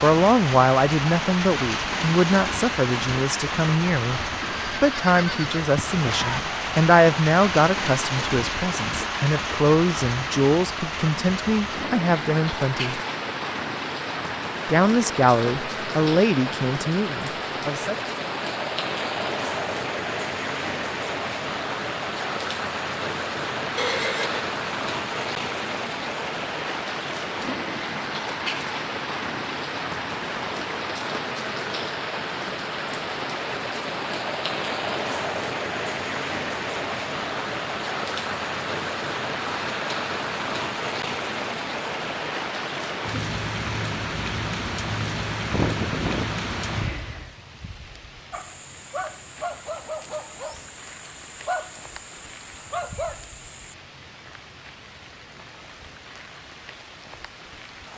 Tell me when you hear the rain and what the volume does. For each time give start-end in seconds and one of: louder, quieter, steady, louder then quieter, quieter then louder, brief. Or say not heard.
0.0-57.9 quieter.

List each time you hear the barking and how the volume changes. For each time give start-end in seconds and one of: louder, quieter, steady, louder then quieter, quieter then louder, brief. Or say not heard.
48.3-53.8 quieter then louder.